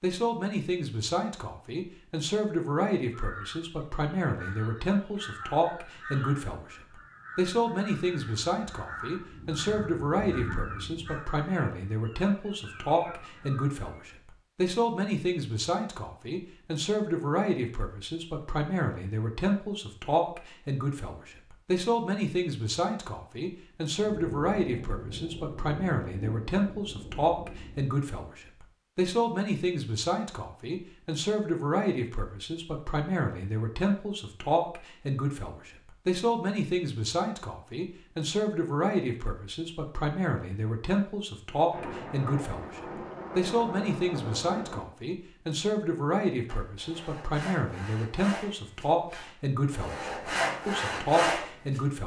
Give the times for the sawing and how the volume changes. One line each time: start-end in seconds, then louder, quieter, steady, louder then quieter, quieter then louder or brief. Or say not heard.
46.5-51.8 quieter then louder.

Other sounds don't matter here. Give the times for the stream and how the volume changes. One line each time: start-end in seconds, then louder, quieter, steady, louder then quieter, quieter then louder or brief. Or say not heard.
not heard.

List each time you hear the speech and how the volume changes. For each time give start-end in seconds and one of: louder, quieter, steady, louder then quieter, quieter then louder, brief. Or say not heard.
0.0-52.0 steady.